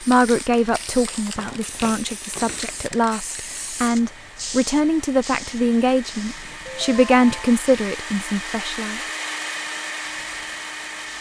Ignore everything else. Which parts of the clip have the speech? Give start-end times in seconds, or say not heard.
0.0-9.0.